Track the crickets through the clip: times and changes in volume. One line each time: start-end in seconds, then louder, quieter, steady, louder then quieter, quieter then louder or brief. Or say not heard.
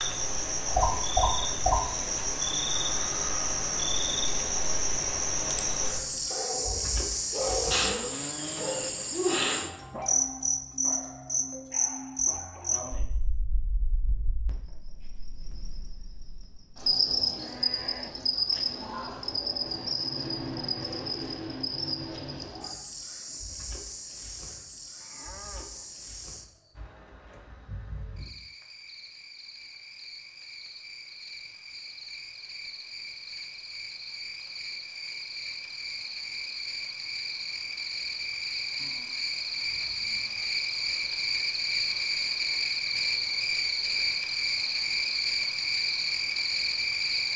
0.0-47.3 quieter then louder.